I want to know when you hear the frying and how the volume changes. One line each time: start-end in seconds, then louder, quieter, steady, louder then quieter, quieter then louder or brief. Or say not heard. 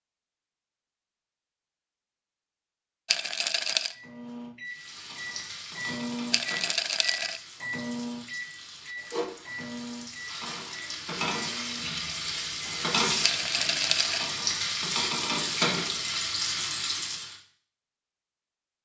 4.7-17.4 louder.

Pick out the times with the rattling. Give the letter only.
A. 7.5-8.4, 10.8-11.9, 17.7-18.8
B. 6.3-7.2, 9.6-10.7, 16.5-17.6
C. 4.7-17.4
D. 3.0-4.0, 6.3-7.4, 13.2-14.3
D.